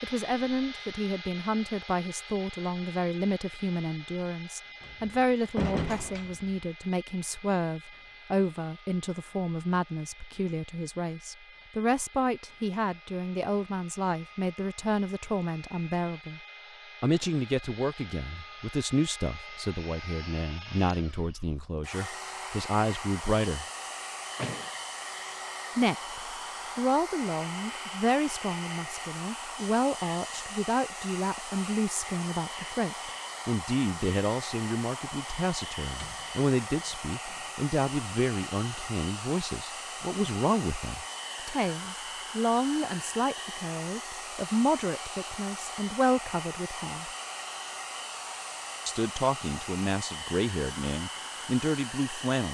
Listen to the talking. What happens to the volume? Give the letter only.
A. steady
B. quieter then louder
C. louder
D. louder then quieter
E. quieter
A.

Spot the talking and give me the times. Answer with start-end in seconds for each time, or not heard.
0.0-16.4, 17.0-23.6, 25.8-47.1, 48.9-52.4.